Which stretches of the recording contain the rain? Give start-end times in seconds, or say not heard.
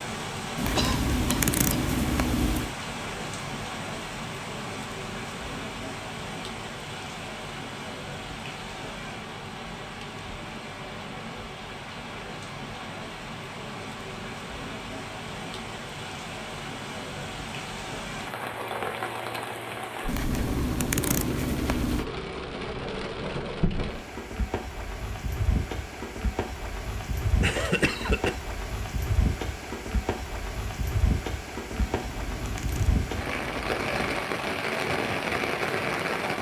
0.0-36.3.